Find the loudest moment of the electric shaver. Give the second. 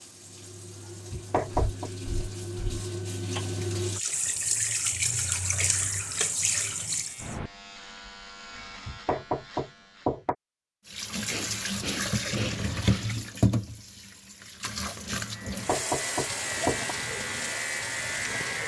18 s.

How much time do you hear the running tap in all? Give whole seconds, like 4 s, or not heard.
15 s.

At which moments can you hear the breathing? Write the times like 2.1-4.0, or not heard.
1.5-2.9, 11.2-13.1.